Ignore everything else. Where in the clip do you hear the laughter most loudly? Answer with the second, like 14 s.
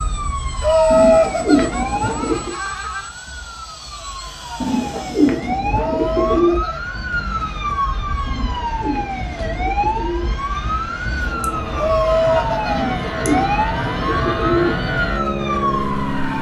1 s.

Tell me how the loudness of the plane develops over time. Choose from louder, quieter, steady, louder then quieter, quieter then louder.
louder.